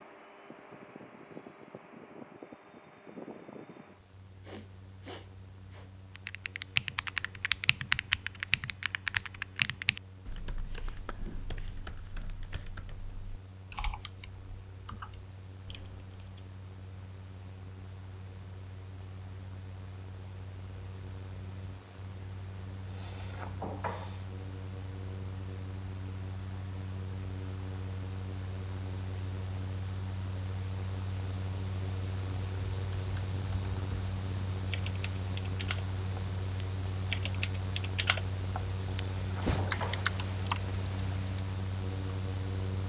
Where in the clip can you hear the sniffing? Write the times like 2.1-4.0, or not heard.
4.0-5.9, 22.9-24.2, 38.9-40.0.